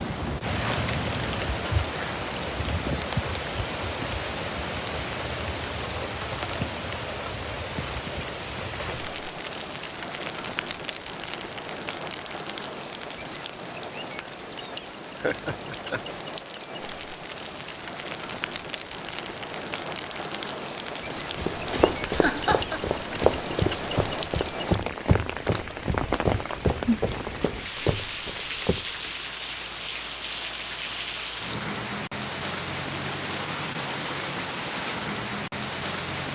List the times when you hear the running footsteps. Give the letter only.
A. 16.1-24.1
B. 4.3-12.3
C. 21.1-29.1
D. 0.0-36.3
C.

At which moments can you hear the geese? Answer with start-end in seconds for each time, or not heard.
not heard.